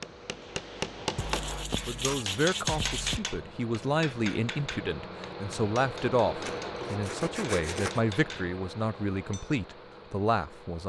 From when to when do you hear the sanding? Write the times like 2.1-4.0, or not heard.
1.1-3.2, 6.4-8.0.